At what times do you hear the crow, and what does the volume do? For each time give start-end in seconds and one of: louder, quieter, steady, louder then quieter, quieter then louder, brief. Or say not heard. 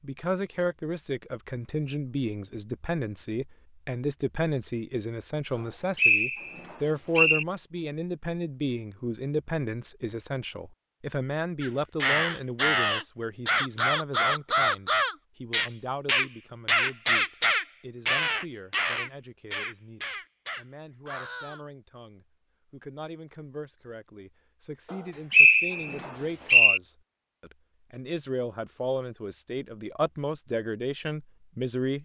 11.6-21.6 quieter.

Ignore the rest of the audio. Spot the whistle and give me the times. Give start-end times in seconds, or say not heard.
5.5-7.5, 24.9-26.8.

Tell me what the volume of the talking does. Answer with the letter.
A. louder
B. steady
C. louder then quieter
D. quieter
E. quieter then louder
E.